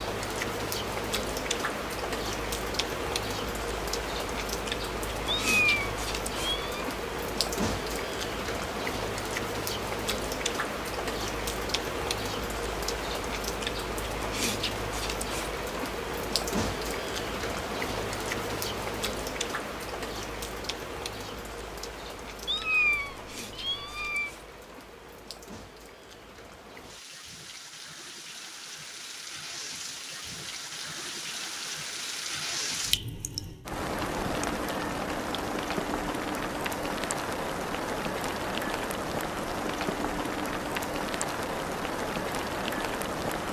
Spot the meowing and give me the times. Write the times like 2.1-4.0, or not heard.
5.2-6.8, 22.4-24.3.